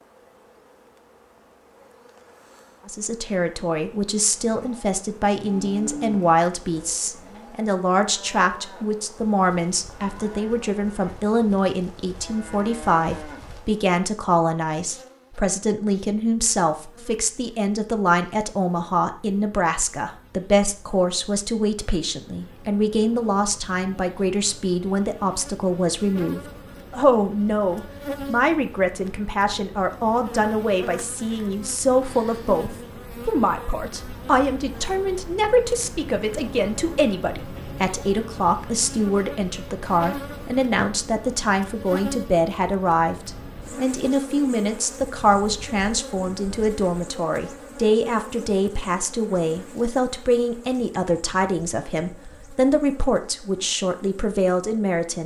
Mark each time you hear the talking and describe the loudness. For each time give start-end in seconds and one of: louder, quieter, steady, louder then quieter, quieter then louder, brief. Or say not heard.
2.9-55.2 steady.